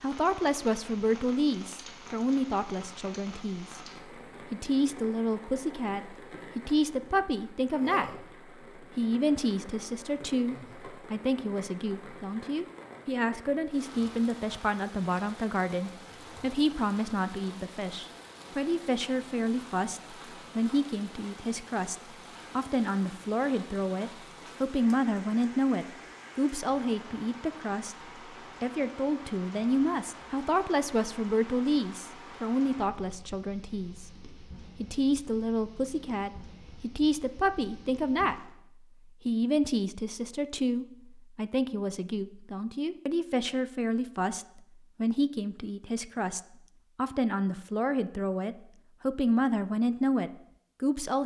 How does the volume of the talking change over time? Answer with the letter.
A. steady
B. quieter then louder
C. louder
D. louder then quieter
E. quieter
A.